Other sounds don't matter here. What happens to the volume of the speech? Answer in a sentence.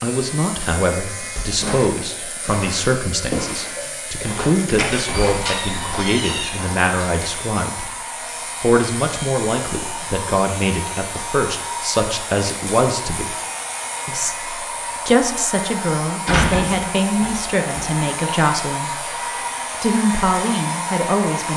The loudness of the speech stays about the same.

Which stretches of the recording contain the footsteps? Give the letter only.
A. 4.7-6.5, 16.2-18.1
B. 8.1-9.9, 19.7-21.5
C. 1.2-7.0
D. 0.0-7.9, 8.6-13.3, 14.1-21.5
C.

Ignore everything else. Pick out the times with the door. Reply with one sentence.
The door can be heard from 4.7 to 6.5 s and from 16.2 to 18.1 s.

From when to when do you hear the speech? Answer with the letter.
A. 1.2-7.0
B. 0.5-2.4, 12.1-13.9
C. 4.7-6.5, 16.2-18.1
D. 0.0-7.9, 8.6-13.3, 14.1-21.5
D.